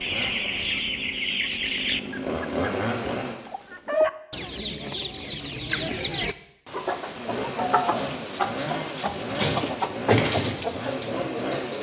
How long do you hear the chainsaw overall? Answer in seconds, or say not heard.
8 s.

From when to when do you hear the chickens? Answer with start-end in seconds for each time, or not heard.
0.0-11.7.